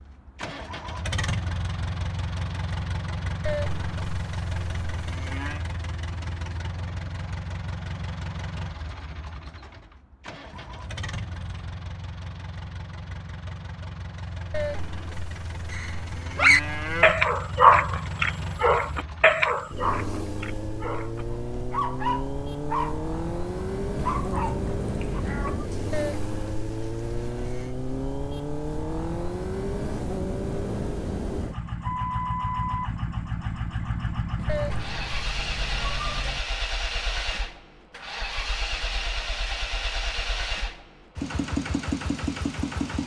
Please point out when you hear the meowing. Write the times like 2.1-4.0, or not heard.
10.5-11.8, 23.9-25.6, 34.4-36.4.